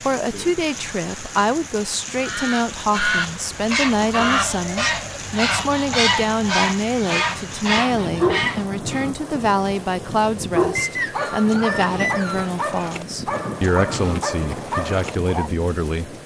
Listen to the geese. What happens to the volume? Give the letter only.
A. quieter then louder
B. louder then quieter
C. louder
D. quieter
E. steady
E.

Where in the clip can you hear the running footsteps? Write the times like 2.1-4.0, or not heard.
not heard.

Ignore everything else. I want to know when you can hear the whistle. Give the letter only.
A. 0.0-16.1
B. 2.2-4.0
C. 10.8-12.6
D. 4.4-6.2
C.